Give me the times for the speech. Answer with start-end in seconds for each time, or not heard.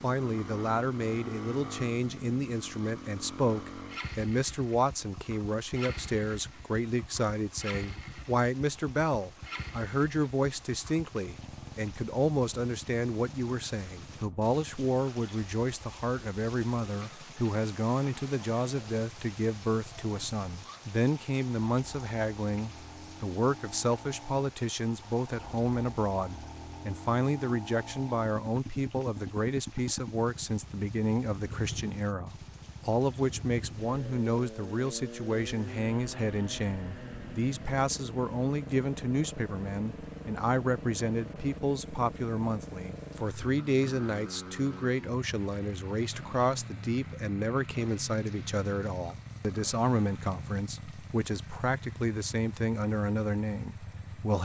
0.0-54.4.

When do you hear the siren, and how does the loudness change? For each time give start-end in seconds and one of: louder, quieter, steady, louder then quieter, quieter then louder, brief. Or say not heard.
not heard.